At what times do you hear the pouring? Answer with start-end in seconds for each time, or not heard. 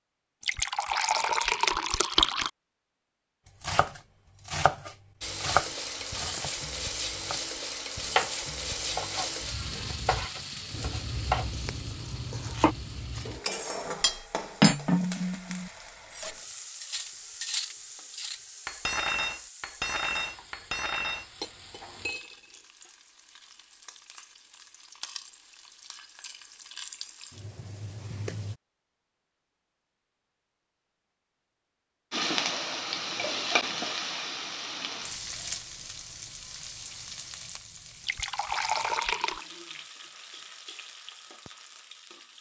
0.4-2.5, 38.0-39.5.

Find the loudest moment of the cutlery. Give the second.
15 s.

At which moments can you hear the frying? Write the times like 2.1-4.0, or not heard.
5.2-28.6, 32.1-42.3.